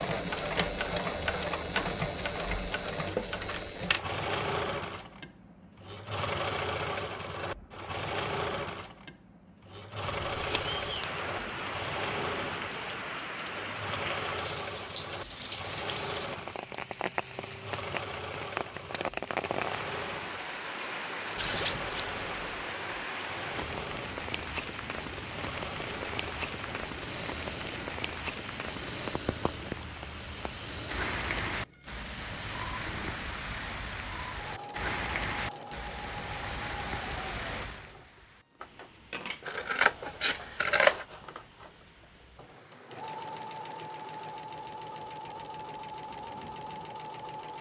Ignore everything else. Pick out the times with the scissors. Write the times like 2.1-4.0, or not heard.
10.3-10.8, 21.4-22.6, 39.5-41.0.